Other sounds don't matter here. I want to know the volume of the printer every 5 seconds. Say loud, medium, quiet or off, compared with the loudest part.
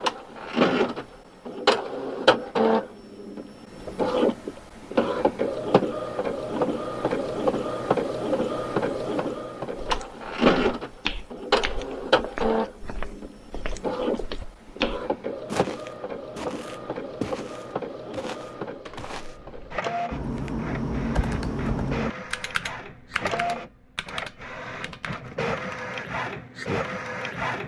loud, loud, loud, medium, medium, medium.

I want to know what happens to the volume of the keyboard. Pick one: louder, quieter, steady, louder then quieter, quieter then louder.
louder then quieter.